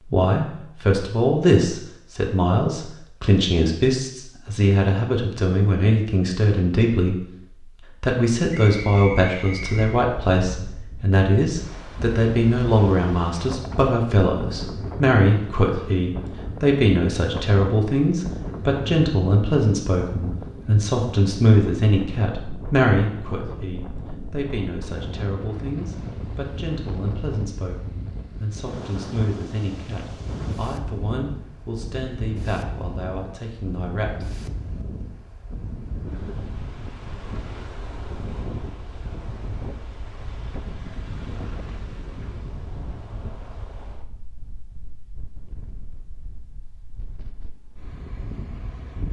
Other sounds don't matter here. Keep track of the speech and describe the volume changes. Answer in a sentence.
The volume of the speech goes down.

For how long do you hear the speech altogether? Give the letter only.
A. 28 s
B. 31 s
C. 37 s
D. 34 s
D.